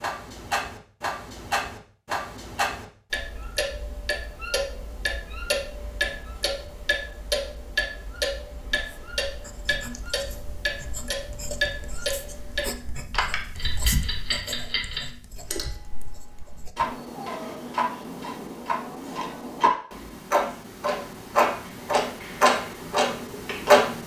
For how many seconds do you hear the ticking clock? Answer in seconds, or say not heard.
24 s.